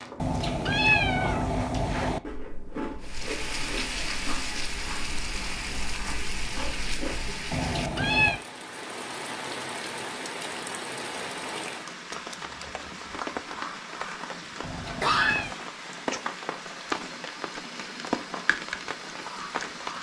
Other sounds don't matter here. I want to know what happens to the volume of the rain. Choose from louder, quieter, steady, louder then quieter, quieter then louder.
steady.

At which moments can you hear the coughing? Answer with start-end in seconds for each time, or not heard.
15.0-15.6.